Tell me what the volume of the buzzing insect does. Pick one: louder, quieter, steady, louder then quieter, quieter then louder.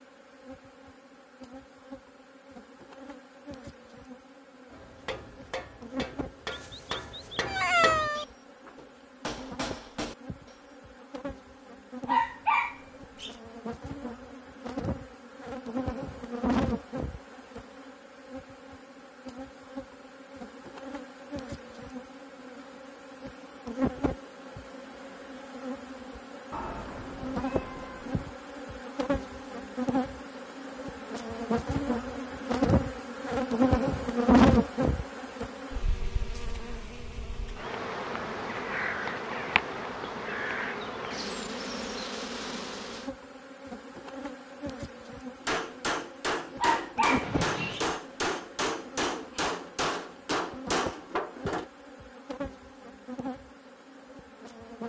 louder then quieter.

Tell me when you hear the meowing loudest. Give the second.
8 s.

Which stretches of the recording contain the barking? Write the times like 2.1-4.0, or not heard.
12.1-13.3, 46.6-47.9.